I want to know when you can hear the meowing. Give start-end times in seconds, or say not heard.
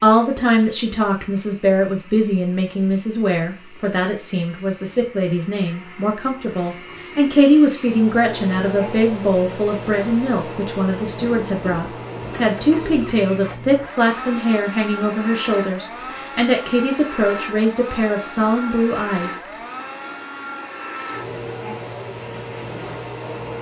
not heard.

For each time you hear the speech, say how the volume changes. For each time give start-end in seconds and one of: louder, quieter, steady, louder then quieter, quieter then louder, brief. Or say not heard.
0.0-19.4 steady.